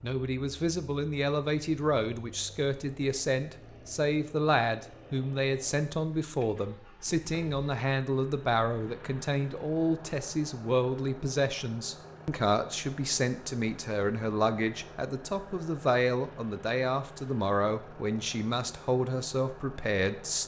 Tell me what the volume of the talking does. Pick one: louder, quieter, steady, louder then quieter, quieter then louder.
steady.